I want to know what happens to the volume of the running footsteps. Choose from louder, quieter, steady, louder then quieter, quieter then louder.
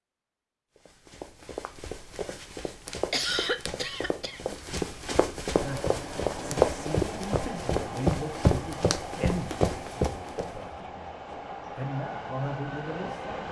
louder.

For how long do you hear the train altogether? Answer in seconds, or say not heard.
8 s.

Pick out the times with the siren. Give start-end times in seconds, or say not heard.
not heard.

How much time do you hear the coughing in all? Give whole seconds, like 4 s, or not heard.
2 s.